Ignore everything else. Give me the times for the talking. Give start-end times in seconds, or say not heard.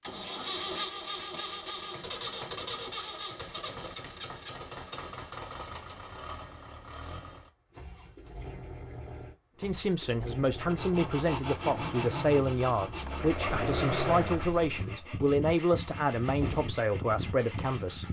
9.6-18.0.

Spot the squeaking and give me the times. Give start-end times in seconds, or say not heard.
13.1-14.6.